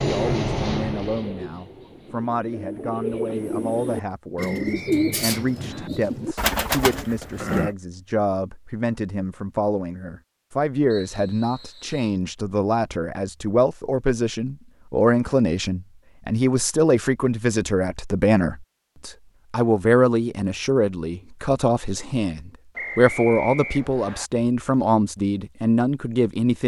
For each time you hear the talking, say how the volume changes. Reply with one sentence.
You can hear the talking from 0.0 to 26.6 s, getting louder.